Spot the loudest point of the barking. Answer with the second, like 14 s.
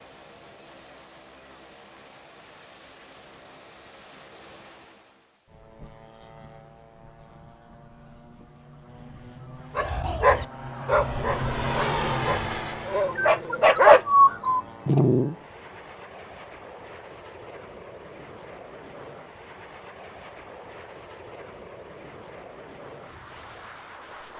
14 s.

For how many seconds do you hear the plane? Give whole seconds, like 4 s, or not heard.
24 s.